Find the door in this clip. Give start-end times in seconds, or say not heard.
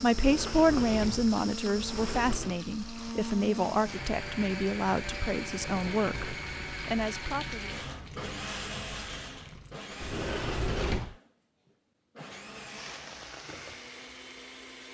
0.1-2.6, 5.7-6.4, 10.0-11.2.